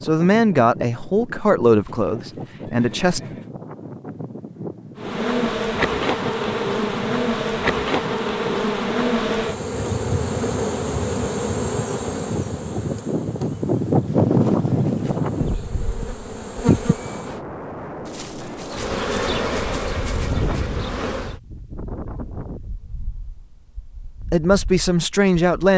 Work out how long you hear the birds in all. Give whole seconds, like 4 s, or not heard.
not heard.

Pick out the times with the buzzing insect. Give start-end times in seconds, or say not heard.
5.0-17.4, 18.6-21.4.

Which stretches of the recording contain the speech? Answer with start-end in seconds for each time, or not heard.
0.0-3.2, 24.3-25.7.